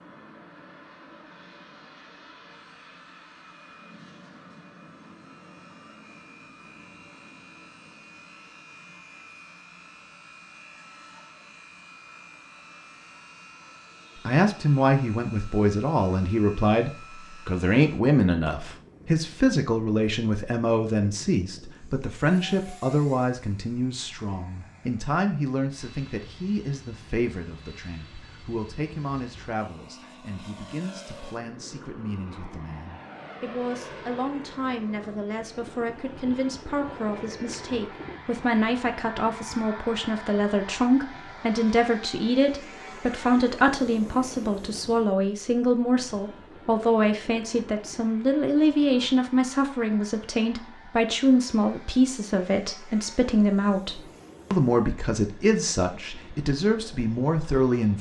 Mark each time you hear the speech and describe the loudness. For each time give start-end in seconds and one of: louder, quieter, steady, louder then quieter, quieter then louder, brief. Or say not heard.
14.2-57.9 quieter then louder.